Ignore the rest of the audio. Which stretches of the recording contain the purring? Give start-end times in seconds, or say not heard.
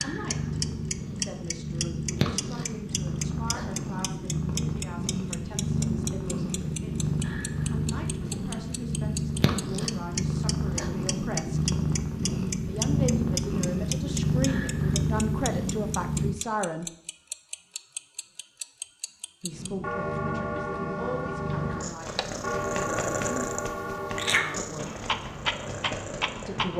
0.0-16.4, 19.5-26.7.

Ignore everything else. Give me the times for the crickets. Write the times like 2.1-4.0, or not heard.
not heard.